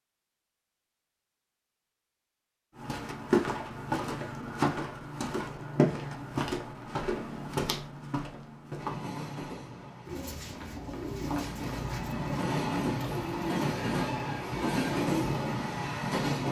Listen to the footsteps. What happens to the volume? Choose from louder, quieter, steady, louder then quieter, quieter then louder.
quieter.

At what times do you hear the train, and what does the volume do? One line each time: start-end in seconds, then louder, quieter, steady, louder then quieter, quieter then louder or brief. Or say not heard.
8.8-16.4 louder.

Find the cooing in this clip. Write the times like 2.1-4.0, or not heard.
10.1-15.6.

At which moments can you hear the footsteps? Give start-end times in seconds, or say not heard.
2.8-11.6.